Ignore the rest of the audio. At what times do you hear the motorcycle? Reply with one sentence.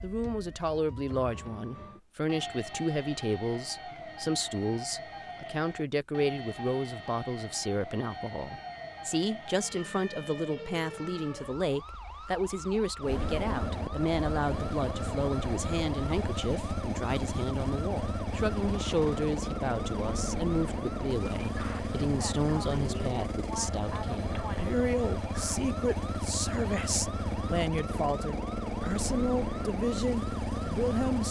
You can hear the motorcycle from 13.0 to 31.2 s.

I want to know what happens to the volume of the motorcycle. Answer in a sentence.
The loudness of the motorcycle stays about the same.